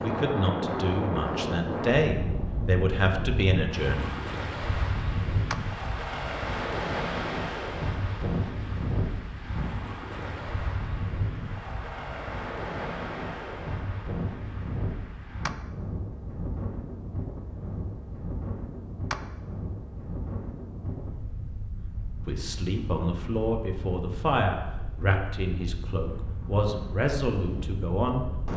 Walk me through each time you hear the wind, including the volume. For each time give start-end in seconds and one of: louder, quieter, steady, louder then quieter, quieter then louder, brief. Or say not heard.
0.0-28.5 quieter.